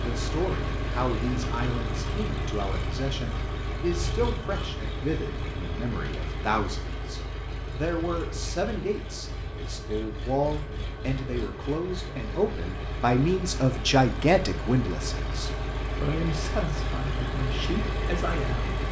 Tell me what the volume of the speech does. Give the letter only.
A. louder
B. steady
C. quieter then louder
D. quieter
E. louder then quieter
E.